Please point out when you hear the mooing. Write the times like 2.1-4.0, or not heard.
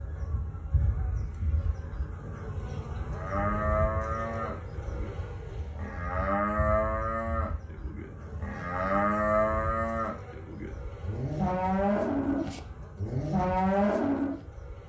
3.1-14.4.